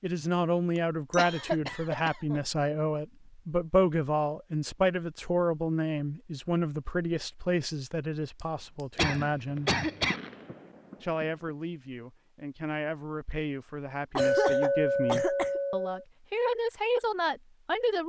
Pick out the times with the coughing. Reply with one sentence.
You can hear the coughing from 1.1 to 2.4 s, from 8.9 to 10.2 s and from 14.2 to 15.6 s.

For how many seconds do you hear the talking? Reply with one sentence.
You can hear the talking for 17 seconds altogether.